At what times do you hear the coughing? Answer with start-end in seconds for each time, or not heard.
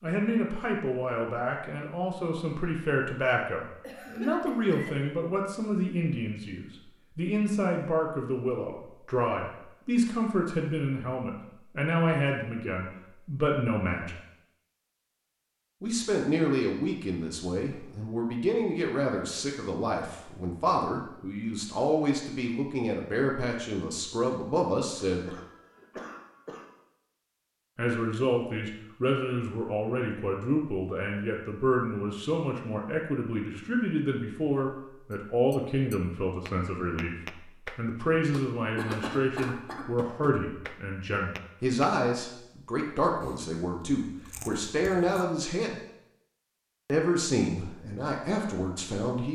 3.8-5.0, 24.9-26.6, 38.8-39.9.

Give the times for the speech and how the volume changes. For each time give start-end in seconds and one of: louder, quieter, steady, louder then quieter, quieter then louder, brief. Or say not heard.
0.0-14.2 steady
15.8-25.4 steady
27.8-37.1 steady
37.8-45.8 steady
46.9-49.3 brief.